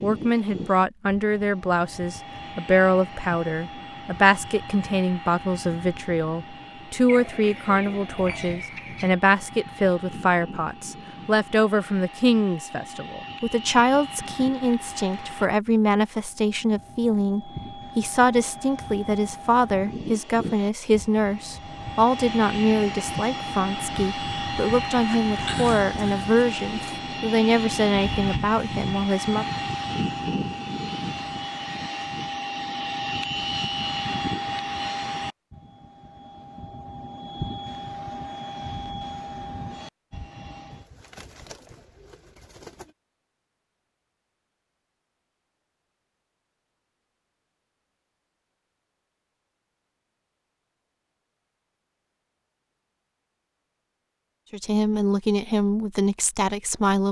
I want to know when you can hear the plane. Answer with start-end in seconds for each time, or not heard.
0.0-40.9.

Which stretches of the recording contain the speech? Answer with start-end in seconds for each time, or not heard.
0.0-29.4, 54.5-57.0.